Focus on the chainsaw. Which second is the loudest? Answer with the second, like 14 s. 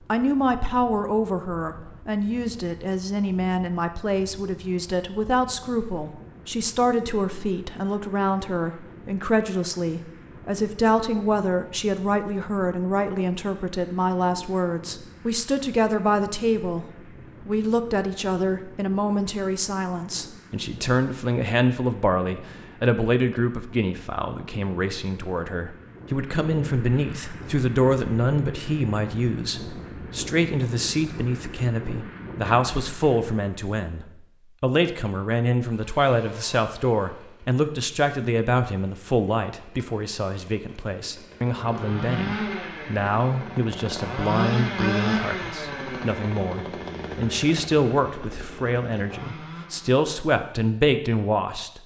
45 s.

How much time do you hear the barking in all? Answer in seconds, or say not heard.
not heard.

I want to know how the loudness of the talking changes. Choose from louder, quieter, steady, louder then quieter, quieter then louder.
steady.